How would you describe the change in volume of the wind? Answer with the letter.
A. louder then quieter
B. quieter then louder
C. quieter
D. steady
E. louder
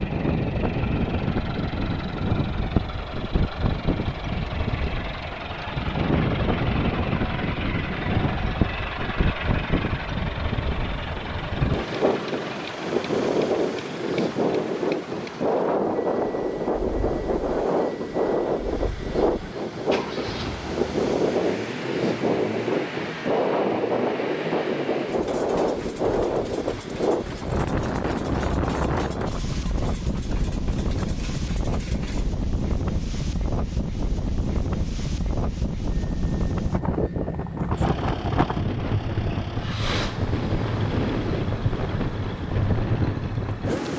D.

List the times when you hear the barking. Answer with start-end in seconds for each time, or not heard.
not heard.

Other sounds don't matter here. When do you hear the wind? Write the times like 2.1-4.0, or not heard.
0.0-43.9.